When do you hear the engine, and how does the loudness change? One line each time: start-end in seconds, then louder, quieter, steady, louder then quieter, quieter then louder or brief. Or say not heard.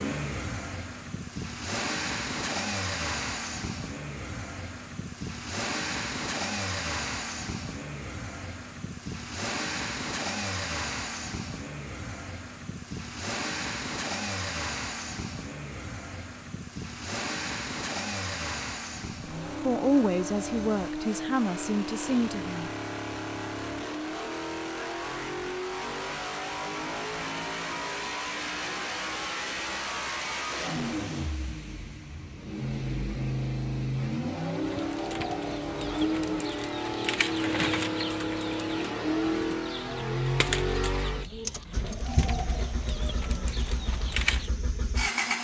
0.0-45.3 steady.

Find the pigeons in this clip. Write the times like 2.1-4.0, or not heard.
34.5-44.5.